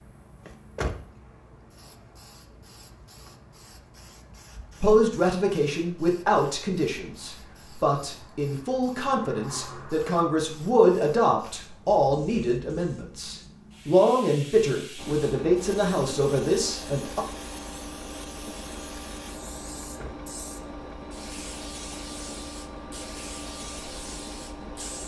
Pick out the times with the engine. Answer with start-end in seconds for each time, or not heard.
14.9-25.0.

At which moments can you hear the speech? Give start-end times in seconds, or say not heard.
4.8-17.2.